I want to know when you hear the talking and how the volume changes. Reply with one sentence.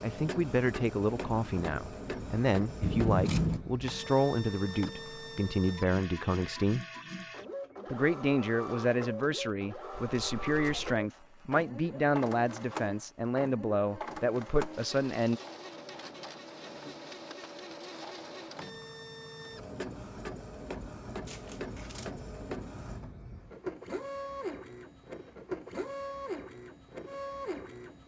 The talking can be heard from 0.0 to 6.8 s, at a steady volume; and from 7.9 to 15.4 s, at a steady volume.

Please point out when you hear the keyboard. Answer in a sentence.
You can't hear the keyboard here.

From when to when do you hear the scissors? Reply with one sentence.
The scissors can be heard from 2.8 to 3.6 s, from 10.1 to 11.0 s and from 21.2 to 22.1 s.